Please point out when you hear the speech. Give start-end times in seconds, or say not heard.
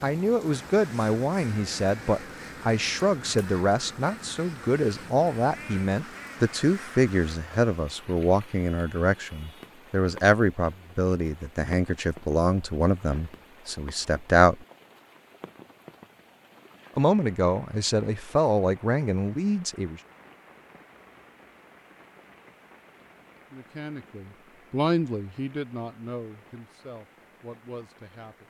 0.0-14.7, 16.9-20.0, 23.5-28.4.